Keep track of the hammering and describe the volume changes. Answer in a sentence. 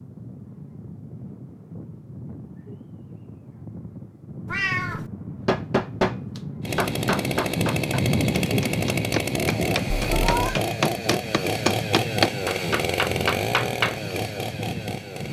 The loudness of the hammering goes down, then up.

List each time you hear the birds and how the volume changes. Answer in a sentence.
You can't hear the birds here.